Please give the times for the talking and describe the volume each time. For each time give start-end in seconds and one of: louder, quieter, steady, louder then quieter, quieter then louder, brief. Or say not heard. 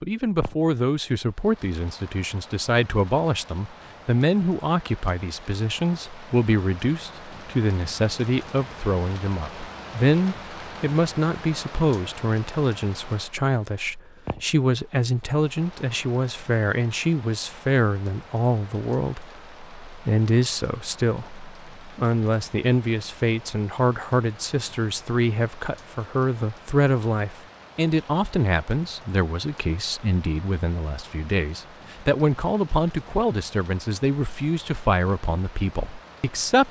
0.0-36.6 steady.